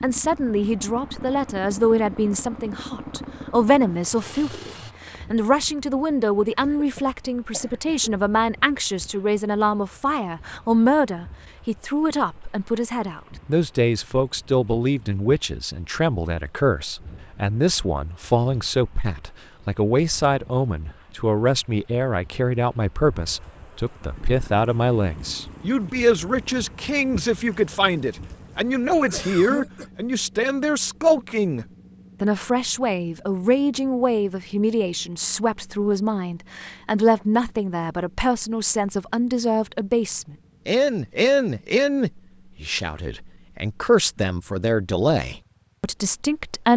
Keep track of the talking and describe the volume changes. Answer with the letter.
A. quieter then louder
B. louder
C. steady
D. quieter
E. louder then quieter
C.